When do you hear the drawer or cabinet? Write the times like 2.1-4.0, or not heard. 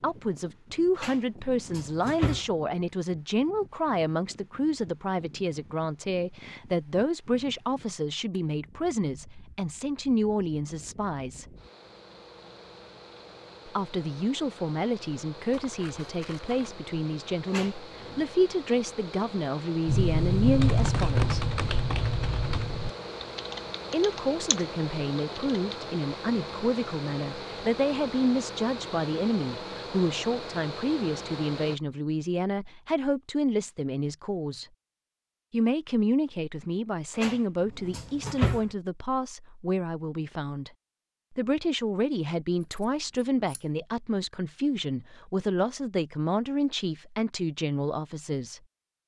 0.9-2.5, 17.4-18.2, 37.1-38.6.